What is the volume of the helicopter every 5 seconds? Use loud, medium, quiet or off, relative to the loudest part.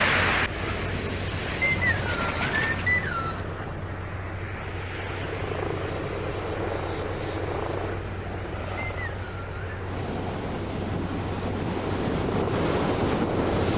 medium, loud, loud.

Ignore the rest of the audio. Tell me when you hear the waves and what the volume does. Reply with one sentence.
The waves can be heard from 0.0 to 13.7 s, getting quieter then louder.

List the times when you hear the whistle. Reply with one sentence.
The whistle can be heard from 1.6 to 3.4 s and from 8.8 to 9.8 s.